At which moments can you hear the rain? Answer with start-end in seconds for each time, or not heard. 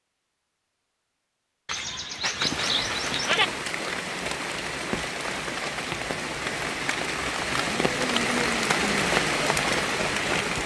2.3-10.6.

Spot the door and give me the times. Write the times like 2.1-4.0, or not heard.
not heard.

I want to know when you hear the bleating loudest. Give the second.
3 s.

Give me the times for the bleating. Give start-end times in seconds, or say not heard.
1.6-3.5.